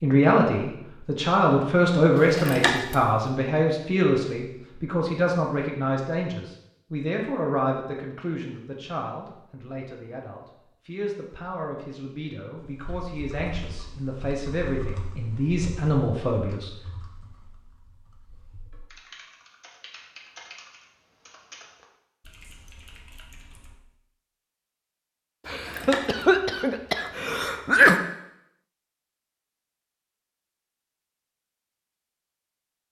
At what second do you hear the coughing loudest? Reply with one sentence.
The loudest moment of the coughing is at 28 seconds.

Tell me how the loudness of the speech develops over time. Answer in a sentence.
The loudness of the speech goes down, then up.